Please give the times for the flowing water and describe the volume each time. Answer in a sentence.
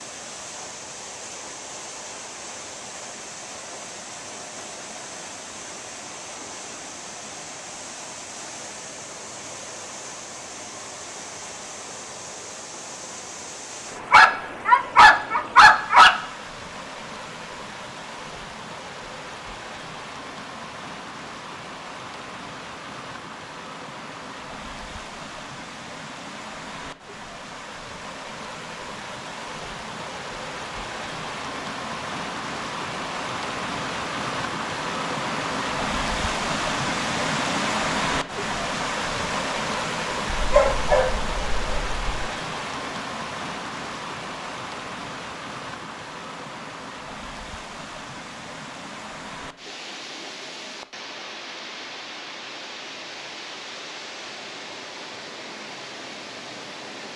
You can hear the flowing water from 0.0 to 57.1 s, getting louder then quieter.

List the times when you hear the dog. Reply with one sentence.
The dog can be heard from 14.1 to 16.1 s and from 40.4 to 42.3 s.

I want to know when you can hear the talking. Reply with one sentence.
You can't hear the talking here.